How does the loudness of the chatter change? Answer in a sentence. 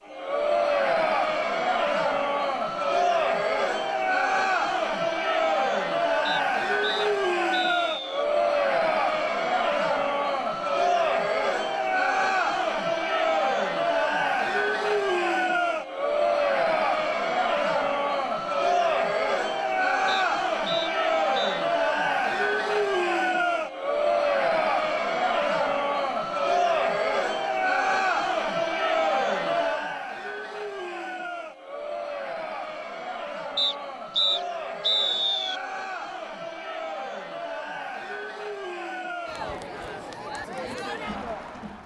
The loudness of the chatter goes down.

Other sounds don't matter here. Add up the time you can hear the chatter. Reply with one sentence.
You can hear the chatter for 42 seconds altogether.